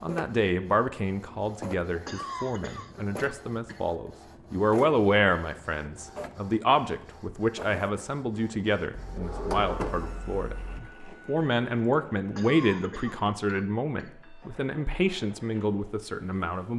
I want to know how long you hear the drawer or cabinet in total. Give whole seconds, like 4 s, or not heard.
2 s.